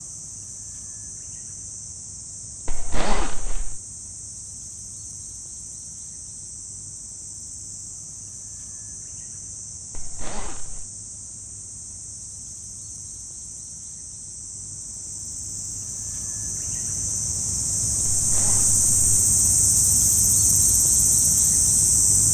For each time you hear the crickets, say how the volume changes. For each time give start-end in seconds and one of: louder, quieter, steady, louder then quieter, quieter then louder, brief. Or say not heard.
0.0-22.2 louder.